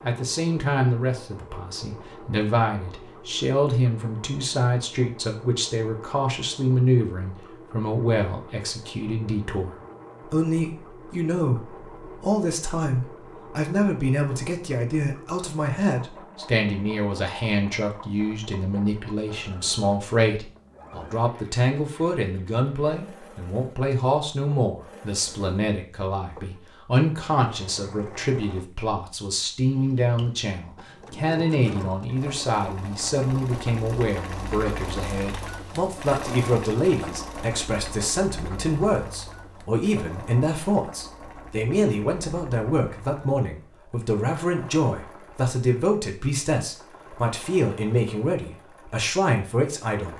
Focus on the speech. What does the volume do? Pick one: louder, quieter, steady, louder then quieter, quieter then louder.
steady.